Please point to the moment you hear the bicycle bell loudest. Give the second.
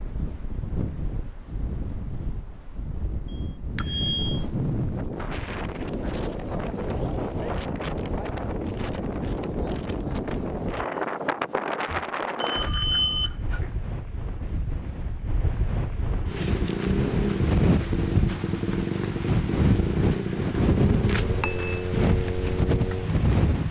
13 s.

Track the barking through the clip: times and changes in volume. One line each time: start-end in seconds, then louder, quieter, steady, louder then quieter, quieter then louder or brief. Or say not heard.
not heard.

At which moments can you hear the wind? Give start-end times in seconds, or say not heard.
0.0-23.6.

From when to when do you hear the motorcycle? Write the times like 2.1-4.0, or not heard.
16.2-23.6.